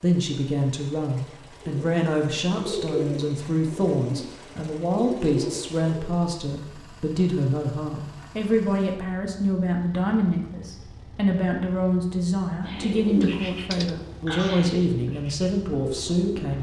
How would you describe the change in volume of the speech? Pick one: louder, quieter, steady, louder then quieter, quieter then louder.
steady.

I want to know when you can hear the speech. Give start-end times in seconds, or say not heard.
0.0-16.5.